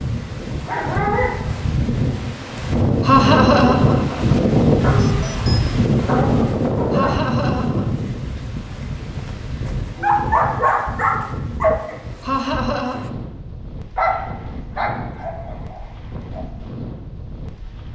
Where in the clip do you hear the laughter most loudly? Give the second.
3 s.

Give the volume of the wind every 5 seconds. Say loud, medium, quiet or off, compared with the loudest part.
loud, loud, quiet, quiet.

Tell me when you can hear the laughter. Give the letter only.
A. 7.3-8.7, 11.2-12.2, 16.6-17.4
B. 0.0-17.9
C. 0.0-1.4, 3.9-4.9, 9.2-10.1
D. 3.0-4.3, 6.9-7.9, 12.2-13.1
D.